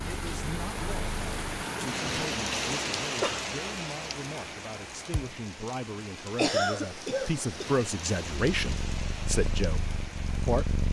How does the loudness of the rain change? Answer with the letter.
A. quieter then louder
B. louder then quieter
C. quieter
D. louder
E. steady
C.